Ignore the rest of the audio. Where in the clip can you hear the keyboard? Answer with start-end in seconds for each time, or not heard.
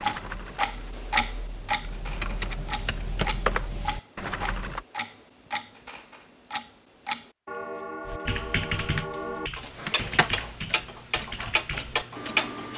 0.0-4.8, 8.1-12.7.